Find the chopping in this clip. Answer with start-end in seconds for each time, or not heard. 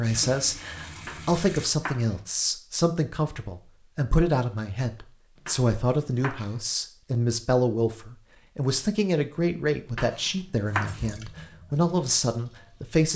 1.1-2.2, 5.5-6.6, 9.9-11.1.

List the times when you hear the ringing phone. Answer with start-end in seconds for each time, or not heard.
not heard.